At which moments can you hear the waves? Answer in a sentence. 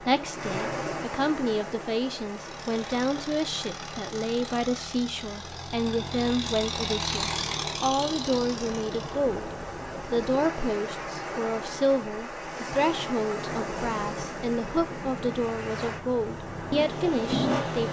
You can hear the waves from 0.0 to 17.8 s.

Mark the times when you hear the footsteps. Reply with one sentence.
You can't hear the footsteps here.